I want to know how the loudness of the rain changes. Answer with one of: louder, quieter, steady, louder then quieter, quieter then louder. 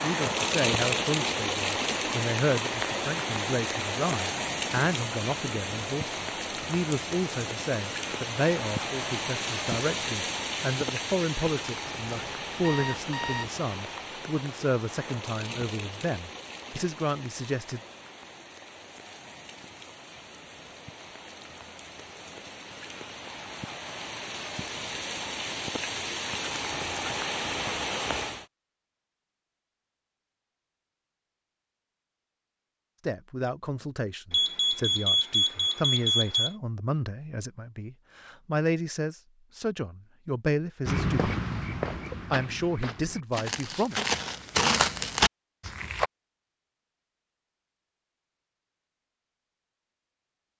quieter then louder.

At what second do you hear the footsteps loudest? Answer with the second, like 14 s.
45 s.